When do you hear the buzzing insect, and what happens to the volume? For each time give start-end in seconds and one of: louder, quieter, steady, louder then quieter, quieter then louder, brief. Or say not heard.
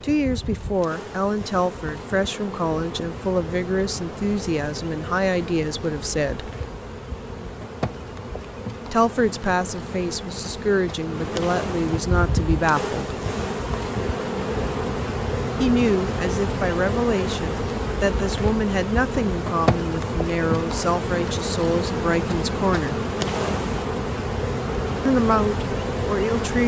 0.0-26.6 louder.